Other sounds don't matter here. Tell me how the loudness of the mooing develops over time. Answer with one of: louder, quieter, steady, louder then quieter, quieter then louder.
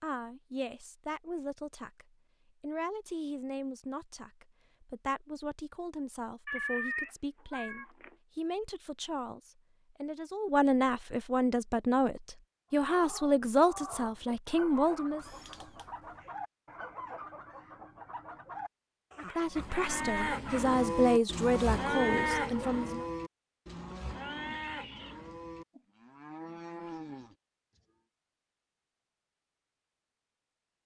quieter.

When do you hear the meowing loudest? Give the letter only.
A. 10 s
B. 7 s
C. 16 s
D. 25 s
B.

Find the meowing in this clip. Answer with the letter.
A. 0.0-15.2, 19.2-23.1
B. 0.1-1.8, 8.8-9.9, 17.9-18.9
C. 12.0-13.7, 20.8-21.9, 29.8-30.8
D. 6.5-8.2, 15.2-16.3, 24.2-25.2
D.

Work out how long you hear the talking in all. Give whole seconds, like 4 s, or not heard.
19 s.